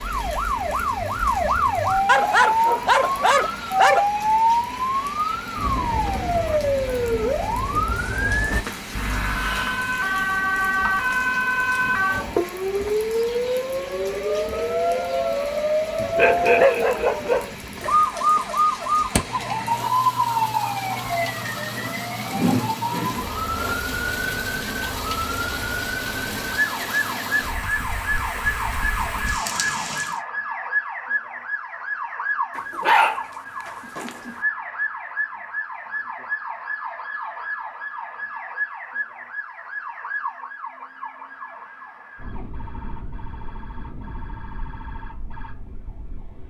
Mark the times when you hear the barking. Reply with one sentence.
The barking can be heard from 2.0 to 4.1 s, from 15.9 to 17.9 s and from 32.5 to 34.4 s.